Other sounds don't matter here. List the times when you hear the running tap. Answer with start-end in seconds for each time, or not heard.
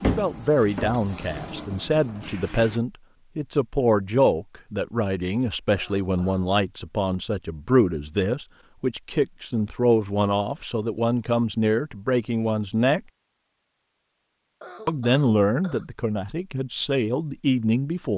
0.0-2.8.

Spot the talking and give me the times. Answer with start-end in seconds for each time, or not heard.
0.0-13.0, 14.8-18.1.